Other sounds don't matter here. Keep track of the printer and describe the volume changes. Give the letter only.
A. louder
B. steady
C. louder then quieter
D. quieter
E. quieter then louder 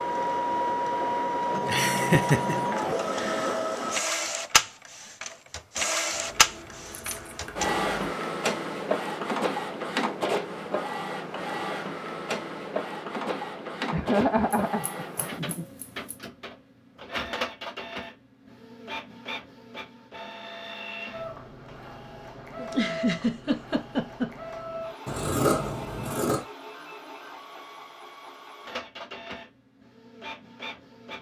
D.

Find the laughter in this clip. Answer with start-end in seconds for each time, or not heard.
1.6-3.5, 13.9-15.7, 22.6-24.4.